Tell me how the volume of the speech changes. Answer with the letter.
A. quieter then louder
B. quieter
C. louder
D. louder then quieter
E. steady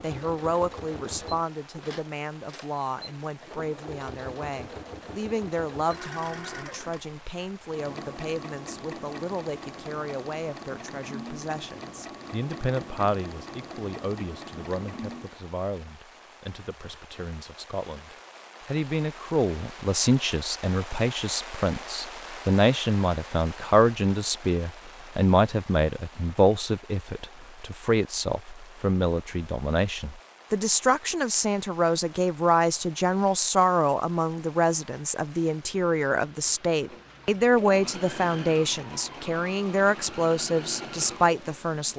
C.